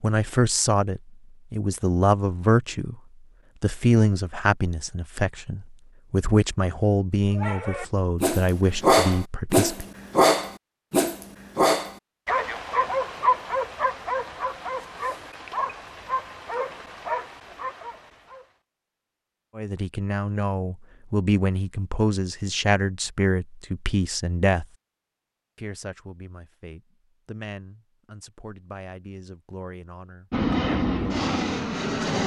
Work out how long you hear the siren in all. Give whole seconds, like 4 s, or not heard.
not heard.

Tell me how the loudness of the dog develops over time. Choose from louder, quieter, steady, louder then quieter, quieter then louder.
quieter.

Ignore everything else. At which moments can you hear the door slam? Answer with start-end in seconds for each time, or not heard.
not heard.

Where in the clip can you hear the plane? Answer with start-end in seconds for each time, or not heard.
30.3-32.2.